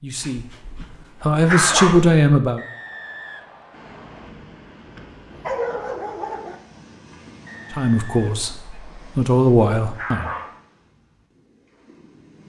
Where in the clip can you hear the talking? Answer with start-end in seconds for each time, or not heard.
0.0-0.6, 1.2-2.6, 7.7-10.3.